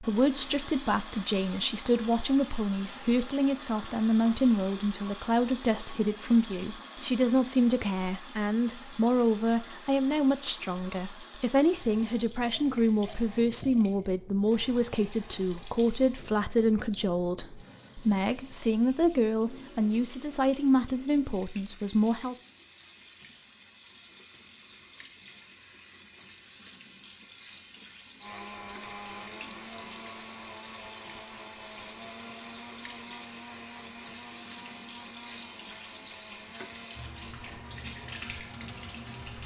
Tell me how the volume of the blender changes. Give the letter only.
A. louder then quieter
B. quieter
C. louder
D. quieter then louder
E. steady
B.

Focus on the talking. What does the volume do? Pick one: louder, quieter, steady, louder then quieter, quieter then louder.
steady.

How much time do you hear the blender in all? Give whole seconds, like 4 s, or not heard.
11 s.